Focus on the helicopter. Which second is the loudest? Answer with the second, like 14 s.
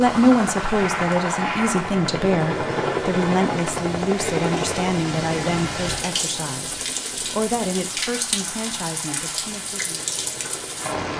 3 s.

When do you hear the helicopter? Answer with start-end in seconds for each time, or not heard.
0.0-11.0.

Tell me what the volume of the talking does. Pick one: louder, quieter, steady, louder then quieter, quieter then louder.
quieter.